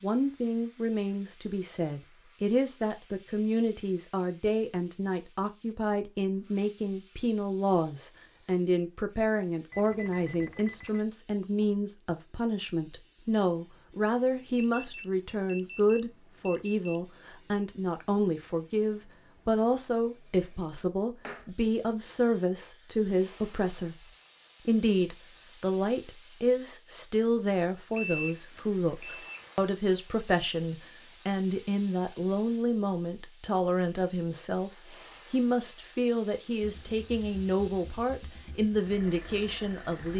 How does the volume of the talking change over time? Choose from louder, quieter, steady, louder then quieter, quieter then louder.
steady.